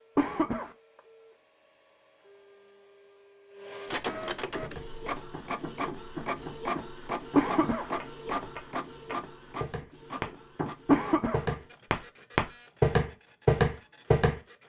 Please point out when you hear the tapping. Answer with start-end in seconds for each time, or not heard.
4.6-14.4.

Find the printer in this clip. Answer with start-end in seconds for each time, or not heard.
0.0-14.6.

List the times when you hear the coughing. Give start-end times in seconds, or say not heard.
0.1-0.7, 7.3-7.9, 10.9-11.4.